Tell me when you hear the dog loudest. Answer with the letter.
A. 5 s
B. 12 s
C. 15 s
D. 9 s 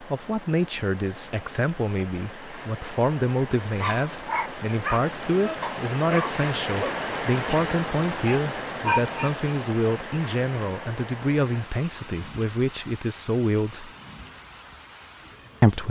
D.